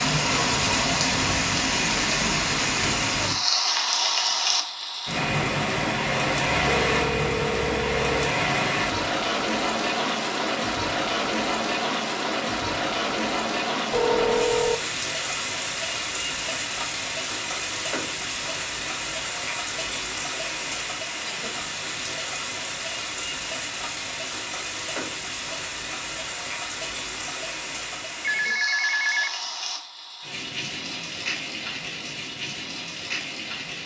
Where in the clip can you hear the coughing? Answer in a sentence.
The coughing can't be heard in this clip.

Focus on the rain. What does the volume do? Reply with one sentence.
The loudness of the rain goes down.